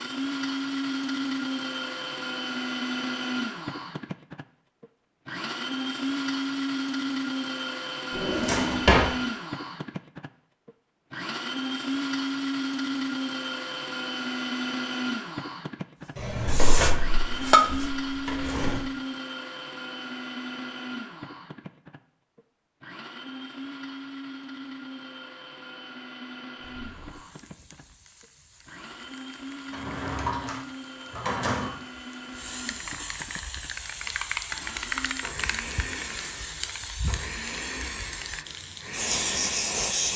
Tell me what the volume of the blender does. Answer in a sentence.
The volume of the blender goes down.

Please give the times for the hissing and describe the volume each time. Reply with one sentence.
You can hear the hissing briefly from 16.0 to 17.9 s; and from 26.6 to 40.1 s, getting louder.